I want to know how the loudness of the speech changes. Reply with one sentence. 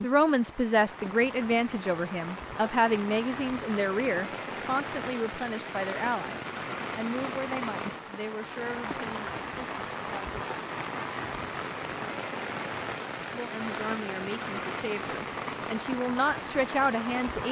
The loudness of the speech goes down, then up.